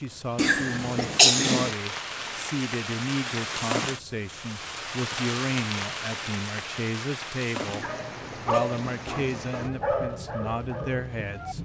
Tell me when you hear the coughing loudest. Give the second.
1 s.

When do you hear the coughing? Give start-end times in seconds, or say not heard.
0.3-1.8, 7.7-8.8.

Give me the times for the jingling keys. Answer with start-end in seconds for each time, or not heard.
not heard.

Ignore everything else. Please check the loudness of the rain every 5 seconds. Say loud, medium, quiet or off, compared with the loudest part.
loud, loud, medium.